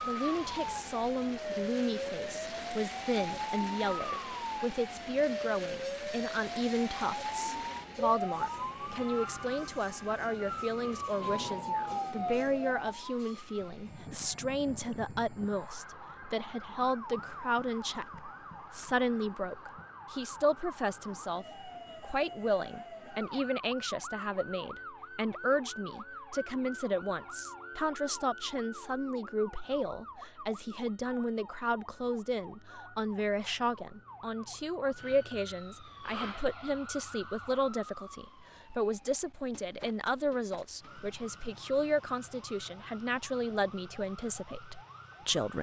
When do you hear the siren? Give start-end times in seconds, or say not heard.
0.0-45.5.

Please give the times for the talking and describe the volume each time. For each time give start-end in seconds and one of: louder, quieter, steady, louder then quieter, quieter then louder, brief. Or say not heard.
0.1-45.5 steady.